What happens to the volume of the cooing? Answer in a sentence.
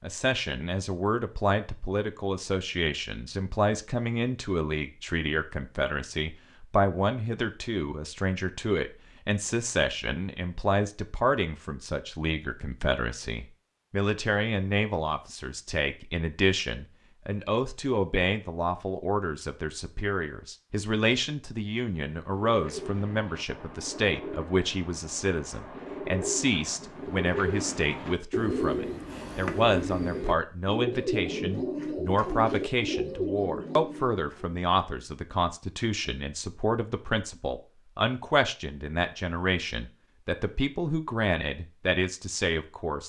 The loudness of the cooing goes up.